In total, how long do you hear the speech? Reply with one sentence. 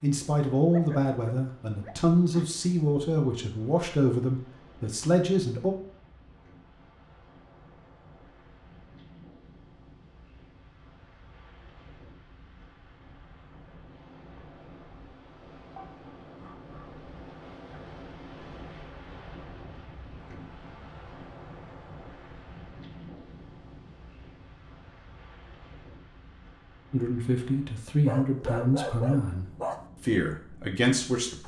The speech can be heard for 10 seconds in total.